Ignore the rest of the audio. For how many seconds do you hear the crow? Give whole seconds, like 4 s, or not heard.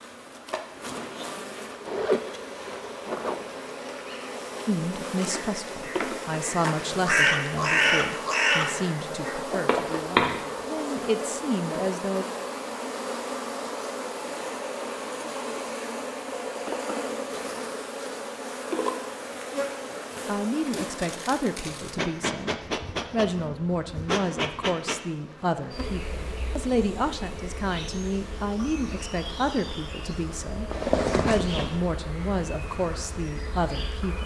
5 s.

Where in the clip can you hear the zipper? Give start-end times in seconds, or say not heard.
1.8-3.6, 30.7-31.8.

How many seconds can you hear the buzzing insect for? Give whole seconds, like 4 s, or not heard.
34 s.